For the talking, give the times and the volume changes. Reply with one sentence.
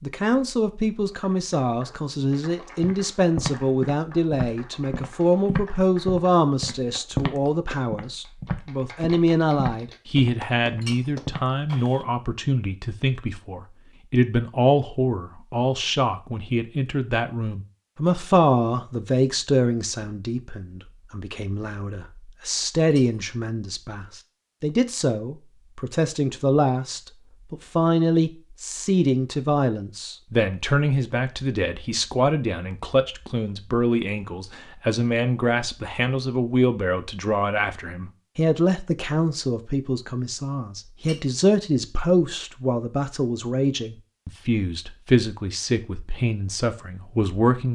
The talking can be heard from 0.0 to 47.7 s, at a steady volume.